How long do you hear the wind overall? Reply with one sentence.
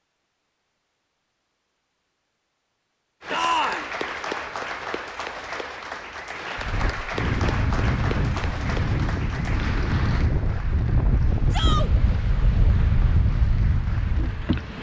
You can hear the wind for 8 seconds altogether.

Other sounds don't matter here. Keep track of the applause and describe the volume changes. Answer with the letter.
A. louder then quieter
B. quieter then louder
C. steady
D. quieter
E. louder
D.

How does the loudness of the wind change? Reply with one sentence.
The volume of the wind stays about the same.